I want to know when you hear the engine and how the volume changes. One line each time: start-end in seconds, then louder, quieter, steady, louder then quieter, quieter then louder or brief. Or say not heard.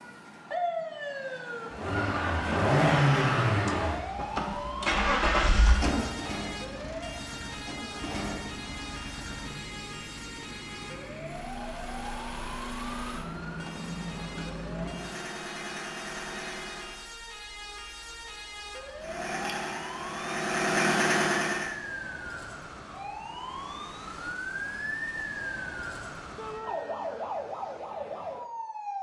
1.7-17.1 quieter
19.0-21.8 brief.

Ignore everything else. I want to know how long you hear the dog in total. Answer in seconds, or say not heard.
not heard.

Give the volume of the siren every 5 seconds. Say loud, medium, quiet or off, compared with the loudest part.
loud, medium, medium, medium, loud, loud.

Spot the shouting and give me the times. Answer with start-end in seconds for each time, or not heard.
26.4-26.8.